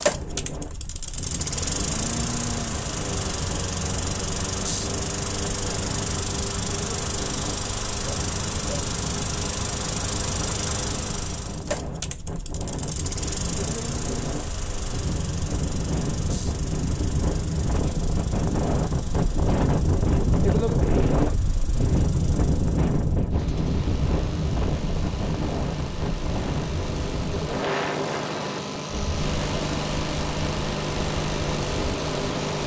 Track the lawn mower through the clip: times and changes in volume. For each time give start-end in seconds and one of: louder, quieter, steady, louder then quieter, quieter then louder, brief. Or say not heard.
0.0-32.6 quieter then louder.